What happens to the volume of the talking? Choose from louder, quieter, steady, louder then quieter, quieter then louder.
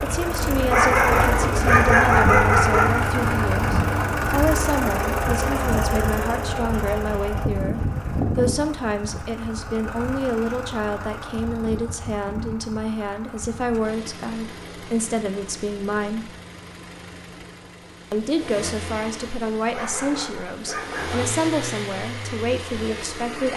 steady.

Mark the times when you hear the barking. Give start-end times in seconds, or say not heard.
0.7-3.1, 19.7-21.4.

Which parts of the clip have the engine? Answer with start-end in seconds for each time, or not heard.
0.0-23.5.